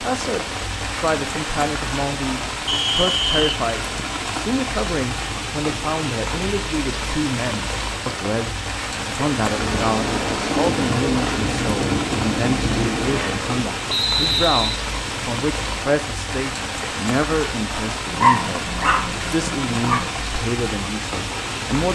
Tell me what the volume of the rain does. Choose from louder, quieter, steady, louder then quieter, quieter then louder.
steady.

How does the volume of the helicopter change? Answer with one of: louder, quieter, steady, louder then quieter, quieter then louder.
steady.